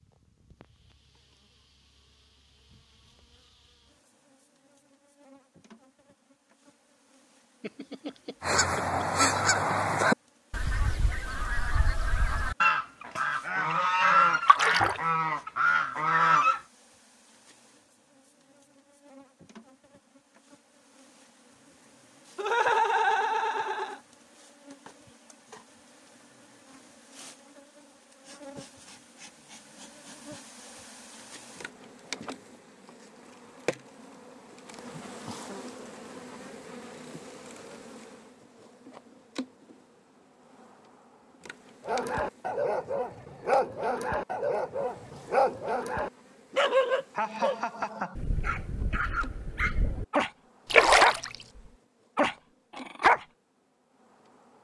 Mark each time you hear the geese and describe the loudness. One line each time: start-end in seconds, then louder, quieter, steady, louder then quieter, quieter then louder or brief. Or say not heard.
8.4-16.6 quieter then louder.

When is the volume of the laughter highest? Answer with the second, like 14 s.
23 s.